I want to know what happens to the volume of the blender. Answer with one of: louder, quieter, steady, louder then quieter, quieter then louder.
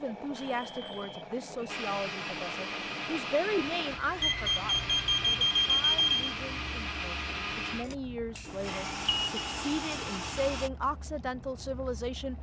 steady.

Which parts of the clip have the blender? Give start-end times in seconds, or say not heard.
1.6-10.7.